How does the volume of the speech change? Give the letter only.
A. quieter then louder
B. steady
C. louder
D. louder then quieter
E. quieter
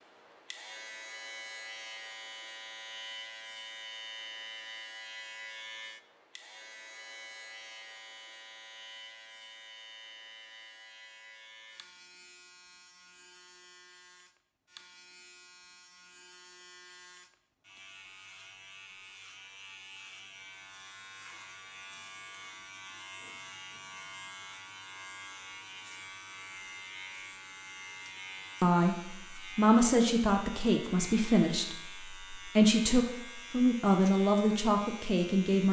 B.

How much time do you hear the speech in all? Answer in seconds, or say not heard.
7 s.